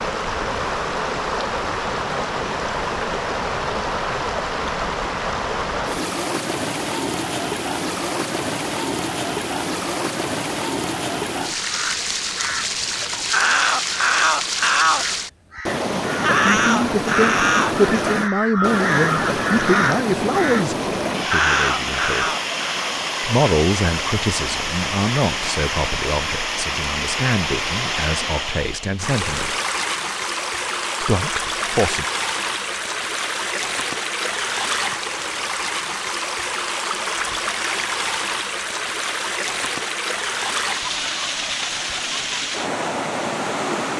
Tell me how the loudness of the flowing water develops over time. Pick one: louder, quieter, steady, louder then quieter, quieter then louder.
steady.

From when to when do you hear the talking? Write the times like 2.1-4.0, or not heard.
16.5-22.3, 23.2-29.6, 31.0-32.0.